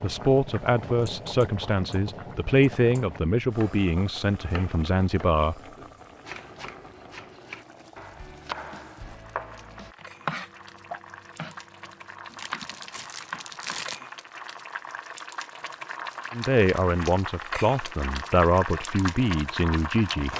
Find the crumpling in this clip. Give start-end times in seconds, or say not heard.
12.3-14.0.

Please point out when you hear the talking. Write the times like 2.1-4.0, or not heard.
0.0-5.5, 16.3-20.3.